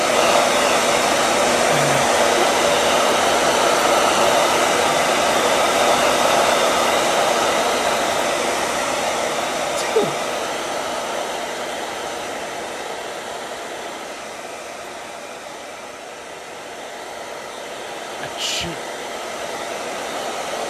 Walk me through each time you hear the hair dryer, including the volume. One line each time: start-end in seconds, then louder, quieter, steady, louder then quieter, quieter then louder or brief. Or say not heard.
0.0-20.6 quieter.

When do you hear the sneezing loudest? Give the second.
10 s.